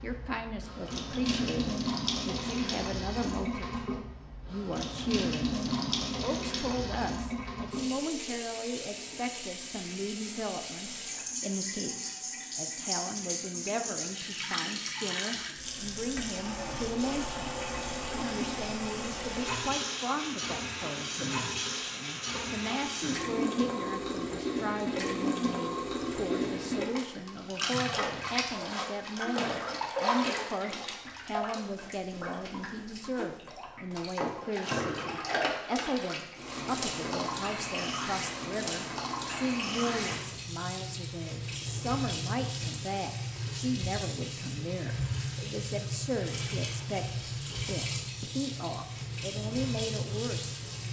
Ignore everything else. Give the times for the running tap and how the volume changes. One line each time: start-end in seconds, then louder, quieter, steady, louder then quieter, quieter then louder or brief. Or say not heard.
0.0-50.8 steady.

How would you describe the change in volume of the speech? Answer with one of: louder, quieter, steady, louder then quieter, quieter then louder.
steady.